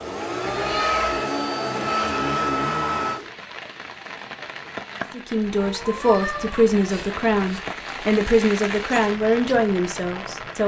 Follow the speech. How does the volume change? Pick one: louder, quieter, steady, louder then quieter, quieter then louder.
steady.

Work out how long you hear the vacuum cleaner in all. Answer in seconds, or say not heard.
3 s.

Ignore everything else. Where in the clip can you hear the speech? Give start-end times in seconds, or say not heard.
5.1-10.6.